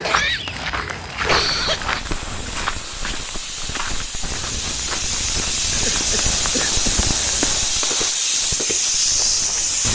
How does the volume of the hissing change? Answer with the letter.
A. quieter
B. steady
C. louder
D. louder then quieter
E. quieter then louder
C.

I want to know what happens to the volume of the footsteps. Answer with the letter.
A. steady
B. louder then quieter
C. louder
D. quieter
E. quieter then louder
D.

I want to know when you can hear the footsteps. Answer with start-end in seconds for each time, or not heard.
0.0-9.9.